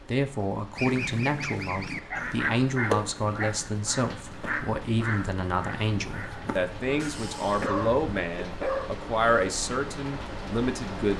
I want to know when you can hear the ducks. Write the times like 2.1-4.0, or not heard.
0.8-8.2.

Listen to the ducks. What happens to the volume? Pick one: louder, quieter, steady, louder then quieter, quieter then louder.
quieter.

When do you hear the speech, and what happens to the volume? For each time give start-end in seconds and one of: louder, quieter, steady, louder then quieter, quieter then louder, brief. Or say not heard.
0.1-11.1 steady.